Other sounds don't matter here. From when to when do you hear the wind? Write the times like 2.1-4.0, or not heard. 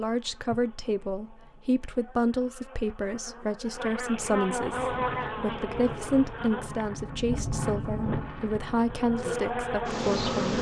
4.7-10.5.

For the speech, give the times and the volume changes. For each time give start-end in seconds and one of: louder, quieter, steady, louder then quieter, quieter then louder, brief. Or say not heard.
0.0-10.5 steady.